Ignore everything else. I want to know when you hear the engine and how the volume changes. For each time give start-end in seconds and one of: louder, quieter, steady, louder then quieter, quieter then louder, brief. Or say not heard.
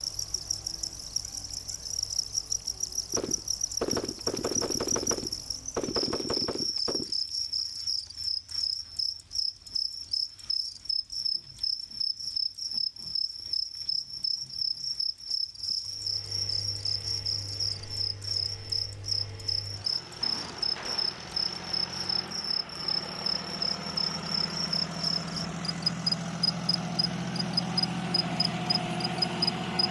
15.8-29.8 louder.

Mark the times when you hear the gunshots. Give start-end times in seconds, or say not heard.
3.1-7.1, 20.1-21.2.